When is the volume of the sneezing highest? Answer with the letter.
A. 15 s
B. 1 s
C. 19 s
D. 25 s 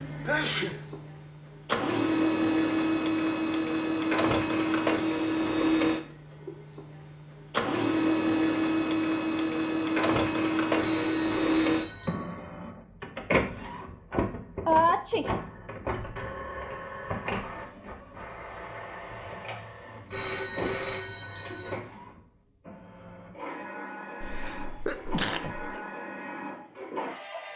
A.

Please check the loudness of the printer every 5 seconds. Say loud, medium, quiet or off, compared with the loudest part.
loud, loud, loud, medium, quiet, medium.